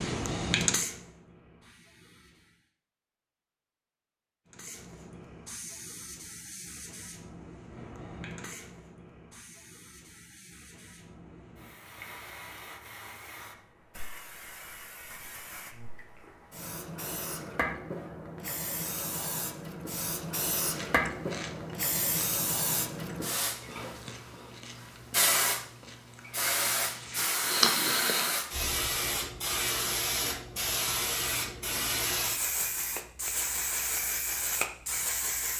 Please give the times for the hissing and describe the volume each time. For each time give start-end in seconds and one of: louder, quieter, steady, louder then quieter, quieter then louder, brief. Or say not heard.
0.0-2.7 brief
4.5-35.5 louder.